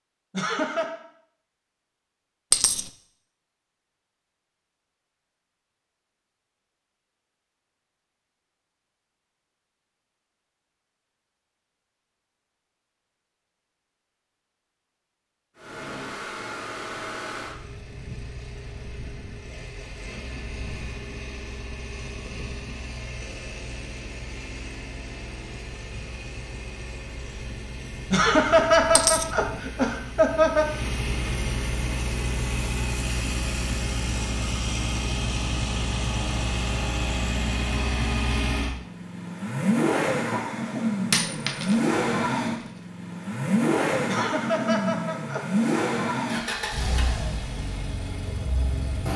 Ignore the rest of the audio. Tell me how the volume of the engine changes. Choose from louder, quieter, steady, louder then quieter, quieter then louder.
louder.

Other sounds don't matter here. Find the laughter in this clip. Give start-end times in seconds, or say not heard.
0.3-0.9, 28.1-30.6, 44.0-45.5.